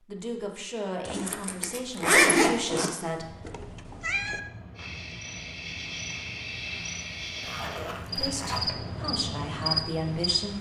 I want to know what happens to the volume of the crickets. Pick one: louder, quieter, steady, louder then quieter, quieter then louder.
louder.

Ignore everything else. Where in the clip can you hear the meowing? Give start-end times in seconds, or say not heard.
3.4-4.4.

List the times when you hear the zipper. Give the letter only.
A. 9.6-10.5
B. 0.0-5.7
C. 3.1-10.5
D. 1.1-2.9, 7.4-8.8
D.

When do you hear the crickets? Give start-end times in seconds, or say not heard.
4.8-10.4.